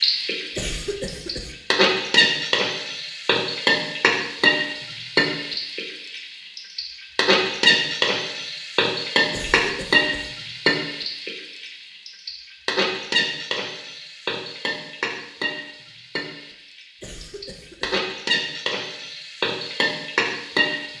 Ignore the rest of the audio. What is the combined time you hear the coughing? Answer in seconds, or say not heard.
3 s.